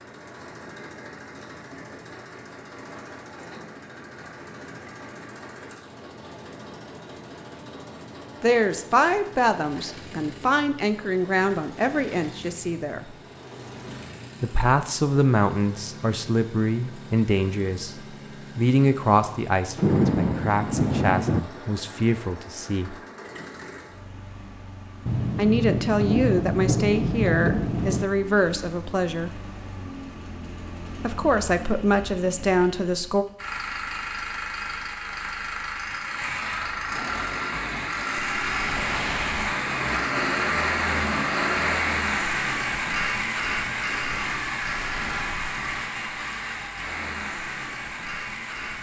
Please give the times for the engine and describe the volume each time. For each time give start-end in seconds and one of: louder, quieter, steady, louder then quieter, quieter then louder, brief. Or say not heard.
0.0-48.7 louder.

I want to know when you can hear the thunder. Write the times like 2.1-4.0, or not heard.
19.8-21.4, 25.1-28.1.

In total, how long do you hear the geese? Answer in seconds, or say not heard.
not heard.